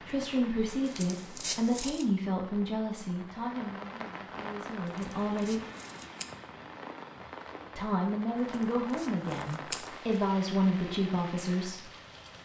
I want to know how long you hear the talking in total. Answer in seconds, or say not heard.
10 s.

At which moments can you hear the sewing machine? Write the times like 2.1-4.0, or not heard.
not heard.